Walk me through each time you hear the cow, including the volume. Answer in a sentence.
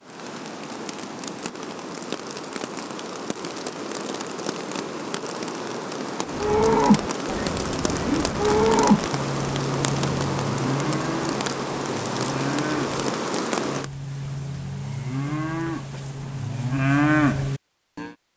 You can hear the cow from 6.3 to 18.1 s, getting quieter then louder.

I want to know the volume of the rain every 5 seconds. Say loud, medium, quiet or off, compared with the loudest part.
medium, loud, loud, off.